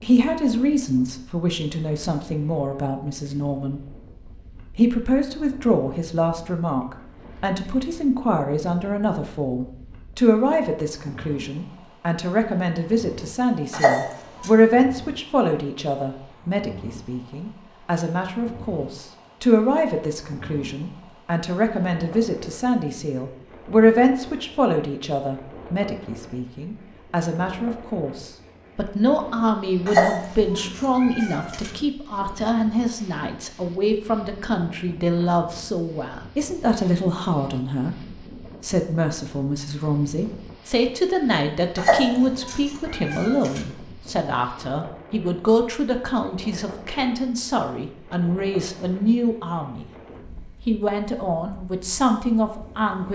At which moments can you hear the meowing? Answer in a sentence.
You can hear the meowing from 13.7 to 14.5 s, from 29.9 to 31.7 s and from 41.8 to 43.6 s.